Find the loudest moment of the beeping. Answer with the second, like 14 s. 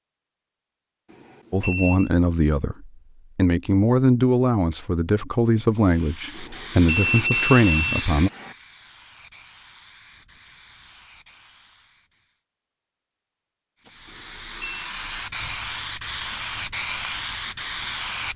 7 s.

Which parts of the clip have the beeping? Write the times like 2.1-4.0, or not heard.
1.1-2.1, 6.3-8.6, 14.1-14.9.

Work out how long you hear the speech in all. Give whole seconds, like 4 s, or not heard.
7 s.